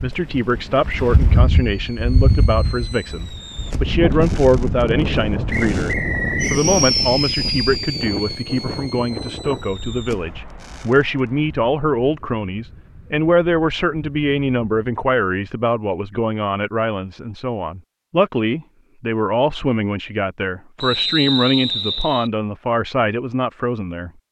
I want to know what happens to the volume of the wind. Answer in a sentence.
The volume of the wind goes down.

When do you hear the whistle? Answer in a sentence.
The whistle can be heard from 5.5 to 6.7 s and from 20.8 to 22.3 s.